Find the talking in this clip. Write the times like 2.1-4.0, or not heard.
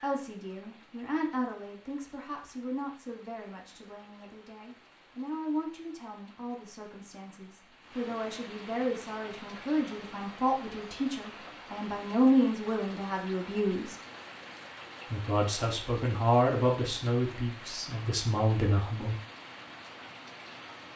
0.0-13.9, 15.1-19.1.